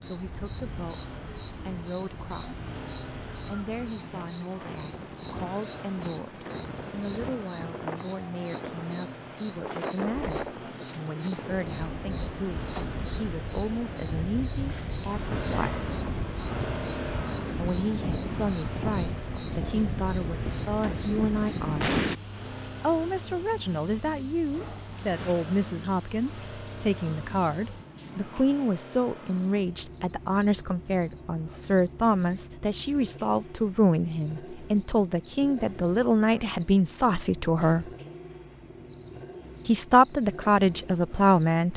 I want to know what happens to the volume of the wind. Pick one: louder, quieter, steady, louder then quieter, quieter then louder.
louder.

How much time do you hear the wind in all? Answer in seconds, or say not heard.
22 s.